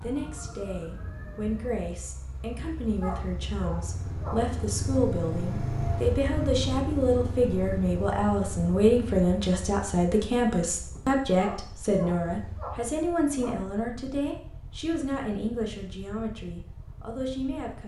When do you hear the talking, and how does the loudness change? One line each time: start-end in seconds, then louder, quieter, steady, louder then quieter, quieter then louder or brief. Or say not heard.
0.0-17.8 louder then quieter.